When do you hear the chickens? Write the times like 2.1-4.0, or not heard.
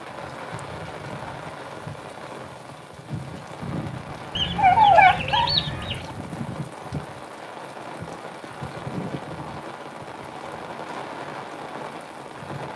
4.3-6.1.